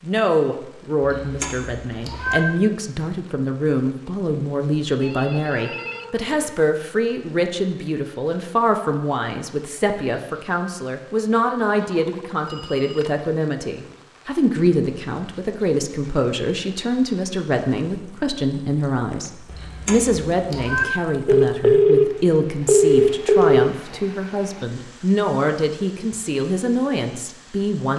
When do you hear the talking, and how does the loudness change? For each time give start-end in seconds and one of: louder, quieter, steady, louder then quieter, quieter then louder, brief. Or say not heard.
0.0-27.9 steady.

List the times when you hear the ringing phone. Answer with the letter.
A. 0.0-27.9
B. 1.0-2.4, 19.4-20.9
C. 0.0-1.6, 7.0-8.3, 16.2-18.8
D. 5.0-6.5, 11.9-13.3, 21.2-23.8
D.